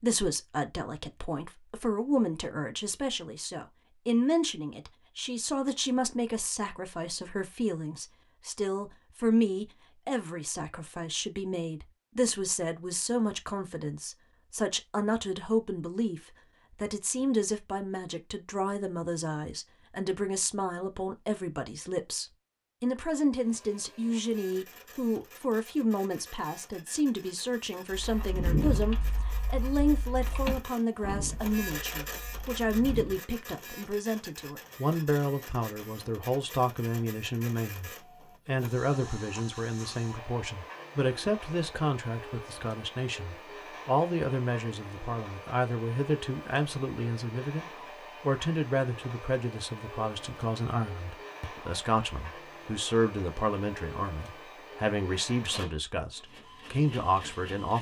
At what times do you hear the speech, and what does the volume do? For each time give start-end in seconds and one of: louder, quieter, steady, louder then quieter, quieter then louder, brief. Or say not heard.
0.0-57.7 steady.